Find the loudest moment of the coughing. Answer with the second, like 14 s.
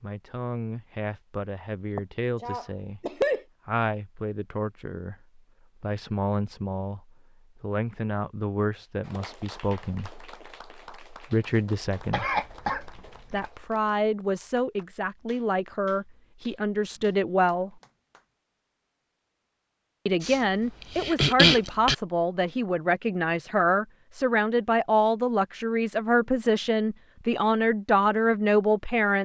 21 s.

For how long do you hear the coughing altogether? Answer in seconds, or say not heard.
5 s.